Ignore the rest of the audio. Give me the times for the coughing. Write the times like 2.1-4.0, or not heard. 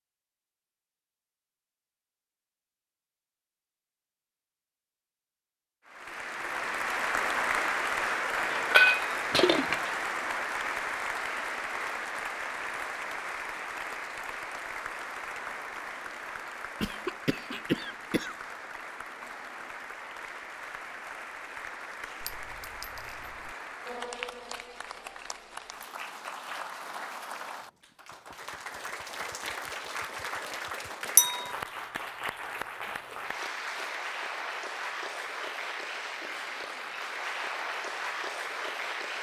16.8-18.4.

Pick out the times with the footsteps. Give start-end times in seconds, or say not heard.
not heard.